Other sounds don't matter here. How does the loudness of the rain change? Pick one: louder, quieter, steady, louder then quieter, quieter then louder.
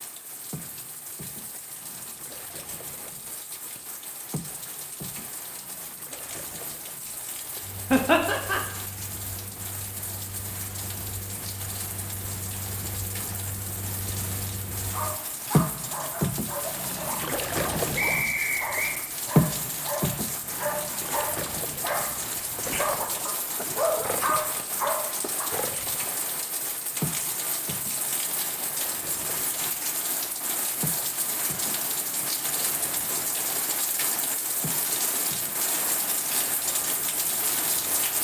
louder.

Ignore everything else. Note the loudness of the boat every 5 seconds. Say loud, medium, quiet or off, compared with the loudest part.
quiet, quiet, quiet, loud, medium, quiet, quiet, quiet.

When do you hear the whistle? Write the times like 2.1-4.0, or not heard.
17.9-18.9.